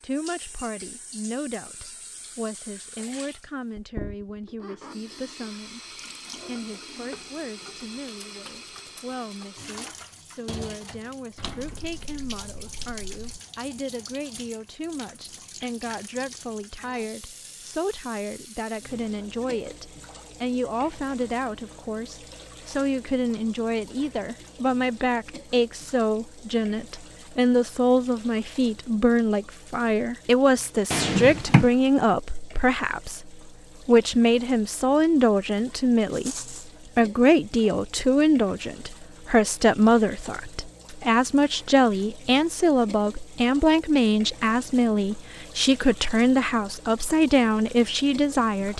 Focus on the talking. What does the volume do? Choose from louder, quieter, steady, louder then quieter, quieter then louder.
louder.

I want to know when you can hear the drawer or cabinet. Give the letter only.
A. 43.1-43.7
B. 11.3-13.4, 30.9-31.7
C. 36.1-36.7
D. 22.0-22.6
B.